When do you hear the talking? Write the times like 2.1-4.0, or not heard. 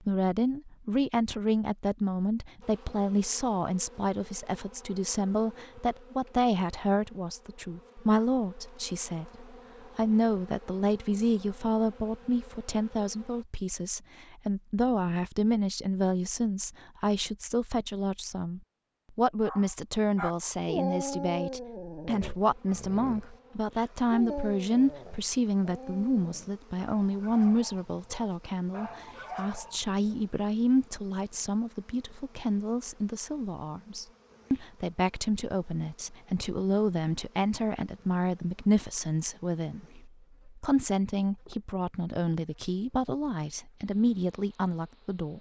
0.1-45.3.